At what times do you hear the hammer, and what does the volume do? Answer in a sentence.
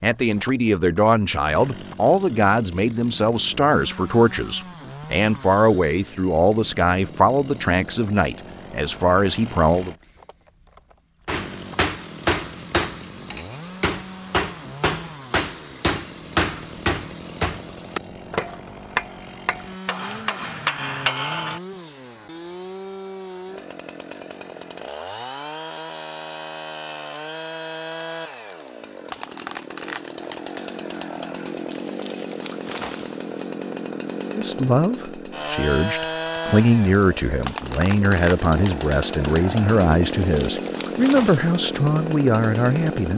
The hammer can be heard from 11.2 to 21.6 s, at a steady volume.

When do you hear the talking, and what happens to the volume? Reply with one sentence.
You can hear the talking from 0.0 to 9.9 s, at a steady volume; and from 34.3 to 43.1 s, at a steady volume.